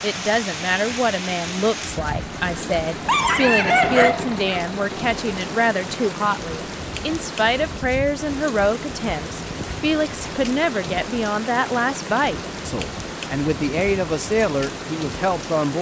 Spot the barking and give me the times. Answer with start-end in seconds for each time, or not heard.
3.0-4.7.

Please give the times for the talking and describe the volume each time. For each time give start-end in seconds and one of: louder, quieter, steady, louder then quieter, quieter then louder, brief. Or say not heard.
0.0-15.7 steady.